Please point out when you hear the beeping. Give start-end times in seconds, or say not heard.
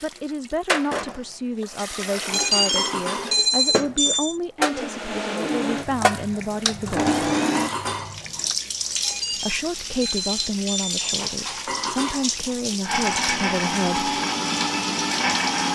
2.2-4.3, 8.9-11.2.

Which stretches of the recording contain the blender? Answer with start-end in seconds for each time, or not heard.
4.7-8.6, 12.8-15.7.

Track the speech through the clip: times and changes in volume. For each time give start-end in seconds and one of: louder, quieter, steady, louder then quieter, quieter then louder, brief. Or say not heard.
0.0-7.2 steady
9.3-14.1 steady.